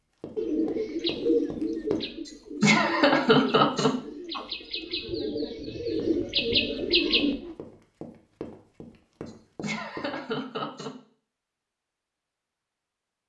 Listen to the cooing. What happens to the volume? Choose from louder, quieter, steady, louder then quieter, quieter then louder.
quieter then louder.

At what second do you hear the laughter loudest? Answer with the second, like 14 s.
3 s.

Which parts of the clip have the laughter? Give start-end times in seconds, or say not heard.
2.6-4.5, 9.6-10.9.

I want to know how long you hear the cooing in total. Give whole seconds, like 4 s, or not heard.
7 s.